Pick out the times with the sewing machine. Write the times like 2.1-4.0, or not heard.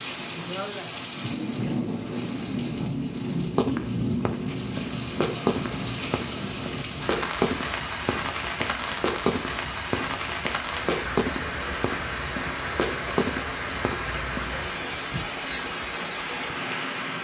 not heard.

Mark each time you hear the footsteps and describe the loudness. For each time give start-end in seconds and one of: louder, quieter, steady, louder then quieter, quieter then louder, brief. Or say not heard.
3.4-14.6 steady.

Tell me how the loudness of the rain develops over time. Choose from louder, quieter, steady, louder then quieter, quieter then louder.
steady.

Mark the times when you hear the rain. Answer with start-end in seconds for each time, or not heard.
0.0-17.1.